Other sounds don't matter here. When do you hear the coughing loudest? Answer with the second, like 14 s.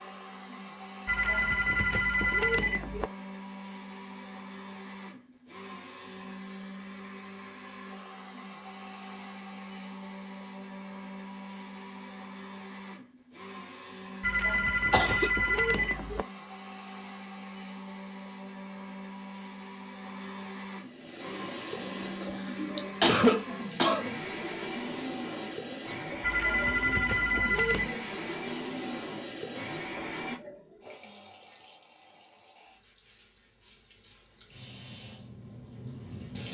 23 s.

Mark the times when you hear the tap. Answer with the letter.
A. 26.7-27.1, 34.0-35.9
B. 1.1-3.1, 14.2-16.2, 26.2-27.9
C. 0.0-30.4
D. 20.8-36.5
D.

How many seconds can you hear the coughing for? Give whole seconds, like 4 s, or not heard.
2 s.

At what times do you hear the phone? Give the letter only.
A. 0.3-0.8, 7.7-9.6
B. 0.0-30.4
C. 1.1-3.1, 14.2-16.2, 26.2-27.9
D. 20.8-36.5
C.